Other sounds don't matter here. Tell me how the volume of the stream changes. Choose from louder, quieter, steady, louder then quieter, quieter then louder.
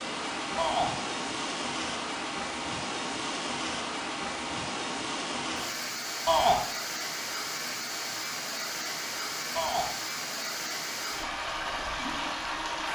steady.